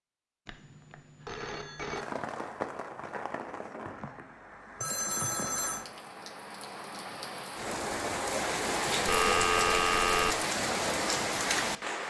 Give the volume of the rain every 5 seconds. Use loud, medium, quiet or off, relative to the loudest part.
medium, loud, loud.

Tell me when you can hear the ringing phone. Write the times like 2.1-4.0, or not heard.
0.5-2.0, 4.8-5.8, 9.1-10.3.